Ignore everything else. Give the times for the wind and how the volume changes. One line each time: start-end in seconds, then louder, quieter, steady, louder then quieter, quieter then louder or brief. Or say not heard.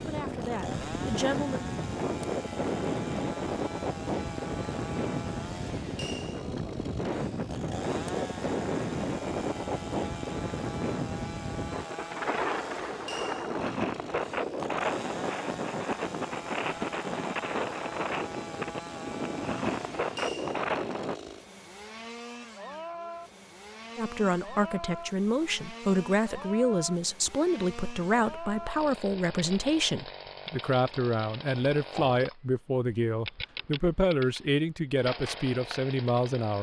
0.0-21.1 steady.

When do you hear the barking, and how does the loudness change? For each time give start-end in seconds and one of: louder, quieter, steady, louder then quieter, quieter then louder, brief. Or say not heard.
not heard.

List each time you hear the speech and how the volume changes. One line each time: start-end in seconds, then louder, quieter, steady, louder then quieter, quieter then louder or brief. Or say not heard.
0.0-1.8 brief
23.9-36.5 steady.